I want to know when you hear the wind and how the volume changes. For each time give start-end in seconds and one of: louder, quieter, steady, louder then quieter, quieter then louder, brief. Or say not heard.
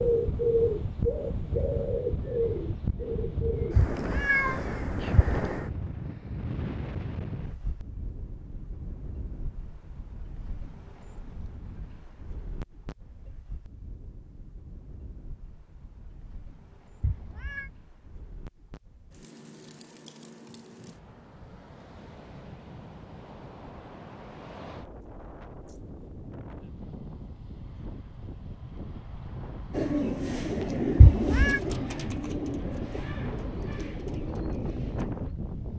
0.0-35.7 quieter then louder.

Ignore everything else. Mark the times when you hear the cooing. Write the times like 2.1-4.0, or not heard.
0.0-3.9, 29.7-35.4.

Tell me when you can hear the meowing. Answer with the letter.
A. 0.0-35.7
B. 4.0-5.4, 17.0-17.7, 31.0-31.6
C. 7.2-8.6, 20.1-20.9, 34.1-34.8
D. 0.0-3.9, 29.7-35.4
B.